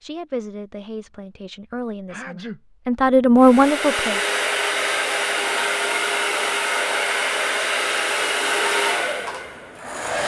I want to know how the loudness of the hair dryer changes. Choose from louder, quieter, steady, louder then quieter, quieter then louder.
steady.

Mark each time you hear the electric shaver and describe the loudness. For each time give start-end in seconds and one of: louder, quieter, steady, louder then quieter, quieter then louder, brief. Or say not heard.
not heard.